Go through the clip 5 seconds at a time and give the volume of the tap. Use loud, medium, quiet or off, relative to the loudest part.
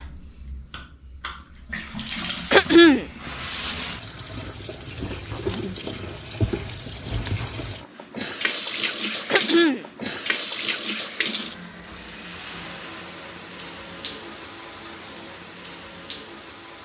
medium, loud, loud, medium.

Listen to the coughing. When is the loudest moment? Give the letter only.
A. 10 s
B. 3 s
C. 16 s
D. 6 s
B.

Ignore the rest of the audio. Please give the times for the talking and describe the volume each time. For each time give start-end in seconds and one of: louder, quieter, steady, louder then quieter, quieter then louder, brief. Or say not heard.
not heard.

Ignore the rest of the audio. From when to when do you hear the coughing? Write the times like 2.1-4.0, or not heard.
2.5-3.0, 9.2-9.8.